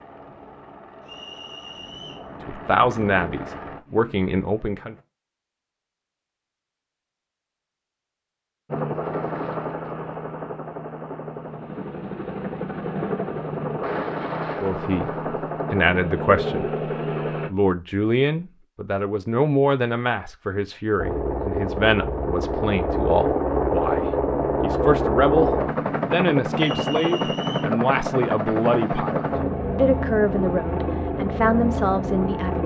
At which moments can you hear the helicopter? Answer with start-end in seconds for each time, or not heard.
0.0-5.0, 8.7-17.5, 20.9-32.6.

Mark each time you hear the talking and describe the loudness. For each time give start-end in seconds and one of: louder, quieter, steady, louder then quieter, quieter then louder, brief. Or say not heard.
2.5-5.0 brief
14.6-16.7 brief
17.5-32.6 steady.